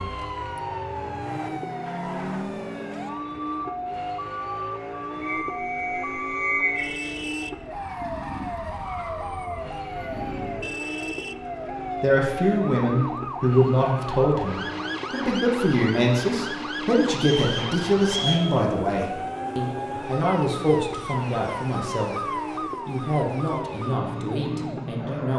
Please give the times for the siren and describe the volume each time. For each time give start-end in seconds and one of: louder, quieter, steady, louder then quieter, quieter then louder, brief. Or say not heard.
0.0-25.3 steady.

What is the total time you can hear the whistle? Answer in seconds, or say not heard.
3 s.